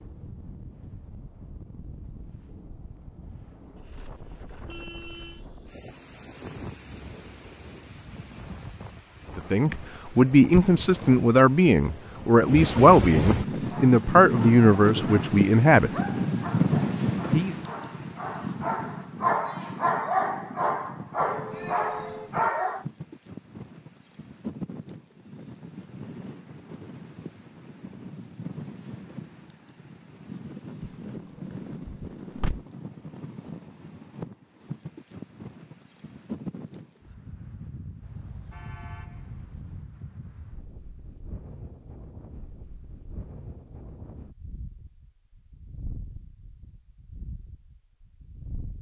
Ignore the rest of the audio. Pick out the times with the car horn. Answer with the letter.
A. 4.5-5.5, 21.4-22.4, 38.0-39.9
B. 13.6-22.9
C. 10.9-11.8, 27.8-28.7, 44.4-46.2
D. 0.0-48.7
A.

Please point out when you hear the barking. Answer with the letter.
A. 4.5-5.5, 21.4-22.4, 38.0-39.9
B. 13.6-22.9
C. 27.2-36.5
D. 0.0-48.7
B.